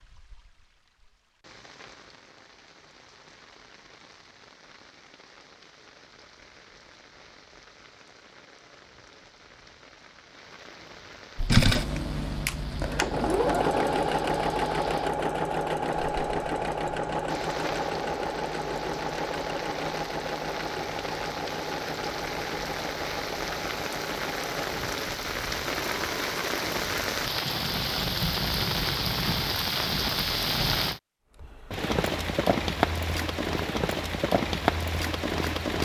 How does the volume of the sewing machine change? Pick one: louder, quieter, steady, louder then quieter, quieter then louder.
quieter.